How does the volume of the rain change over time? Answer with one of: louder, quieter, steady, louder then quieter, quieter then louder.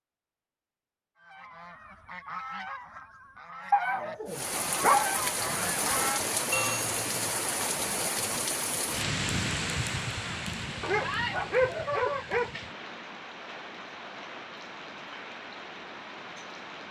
quieter.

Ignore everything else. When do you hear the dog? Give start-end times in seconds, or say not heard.
3.7-5.7, 10.8-12.7.